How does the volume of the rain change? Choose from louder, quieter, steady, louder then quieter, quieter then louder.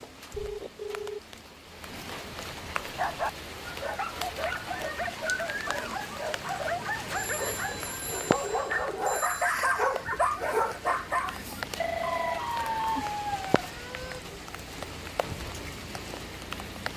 steady.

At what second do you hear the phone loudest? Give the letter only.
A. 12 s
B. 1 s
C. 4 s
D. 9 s
A.